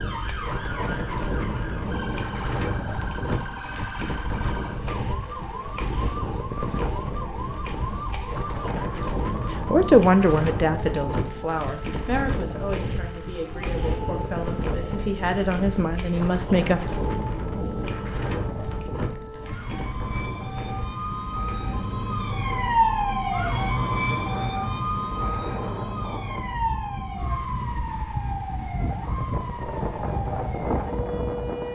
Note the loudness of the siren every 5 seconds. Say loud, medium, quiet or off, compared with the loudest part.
medium, medium, quiet, quiet, loud, medium, medium.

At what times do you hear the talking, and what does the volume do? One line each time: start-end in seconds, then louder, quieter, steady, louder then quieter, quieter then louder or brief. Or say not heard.
9.7-16.8 quieter then louder.